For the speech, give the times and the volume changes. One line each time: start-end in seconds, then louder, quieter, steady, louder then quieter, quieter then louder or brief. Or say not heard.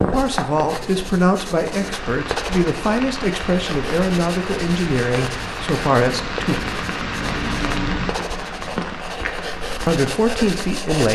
0.0-6.6 steady
9.8-11.1 brief.